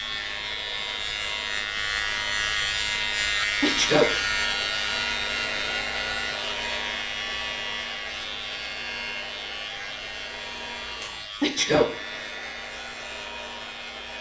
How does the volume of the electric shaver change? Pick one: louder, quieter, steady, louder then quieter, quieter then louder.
quieter.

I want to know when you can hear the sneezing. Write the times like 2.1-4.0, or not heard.
3.6-4.2, 11.4-11.9.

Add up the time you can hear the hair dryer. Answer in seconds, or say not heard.
14 s.